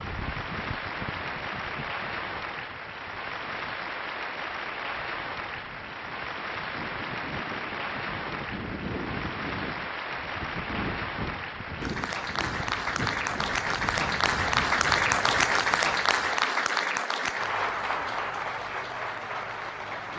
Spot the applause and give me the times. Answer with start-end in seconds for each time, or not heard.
0.0-20.1.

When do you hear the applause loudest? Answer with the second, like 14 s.
15 s.